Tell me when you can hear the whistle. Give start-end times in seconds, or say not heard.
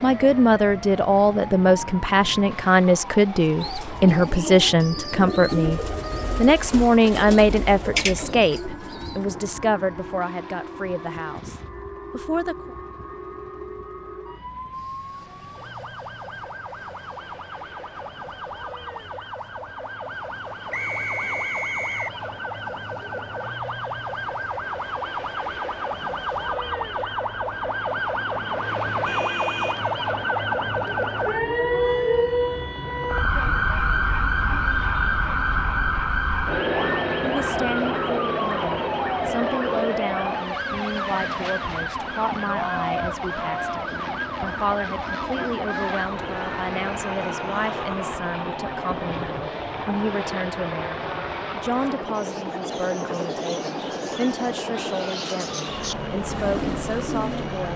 20.7-22.1.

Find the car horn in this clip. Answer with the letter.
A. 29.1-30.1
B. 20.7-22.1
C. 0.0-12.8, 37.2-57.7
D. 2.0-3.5
A.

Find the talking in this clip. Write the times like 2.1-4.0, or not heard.
0.0-12.8, 37.2-57.7.